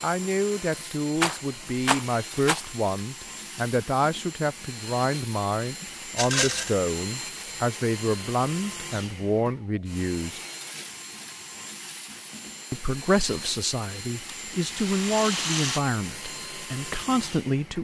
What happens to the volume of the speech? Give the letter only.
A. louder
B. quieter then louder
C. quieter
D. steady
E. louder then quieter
D.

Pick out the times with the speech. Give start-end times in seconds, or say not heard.
0.0-10.4, 12.7-17.8.